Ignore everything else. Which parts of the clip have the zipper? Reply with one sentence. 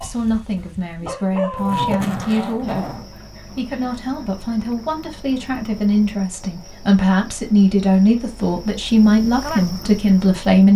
The zipper can be heard from 1.6 to 3.1 s.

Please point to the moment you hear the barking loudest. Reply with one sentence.
The volume of the barking peaks at 2 seconds.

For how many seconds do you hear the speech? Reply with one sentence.
The speech can be heard for 11 seconds in total.